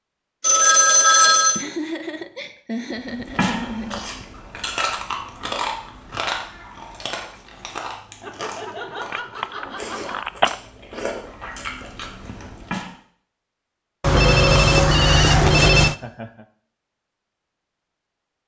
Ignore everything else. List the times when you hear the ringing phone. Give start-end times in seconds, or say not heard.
0.4-1.6, 9.1-10.6, 14.0-15.9.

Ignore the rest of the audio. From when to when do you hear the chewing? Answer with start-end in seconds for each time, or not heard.
3.0-12.9.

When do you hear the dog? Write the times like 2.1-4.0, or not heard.
not heard.